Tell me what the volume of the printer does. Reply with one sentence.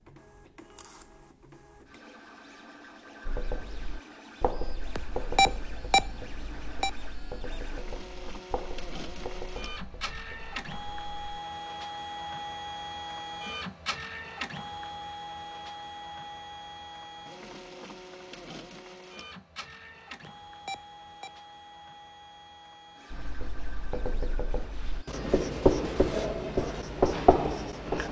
The volume of the printer goes up, then down.